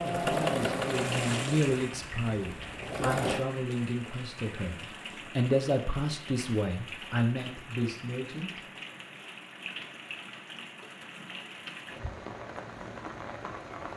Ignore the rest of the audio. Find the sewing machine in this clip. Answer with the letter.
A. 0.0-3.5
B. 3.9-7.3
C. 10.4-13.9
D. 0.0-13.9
A.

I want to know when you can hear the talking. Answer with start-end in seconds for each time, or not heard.
0.0-8.7.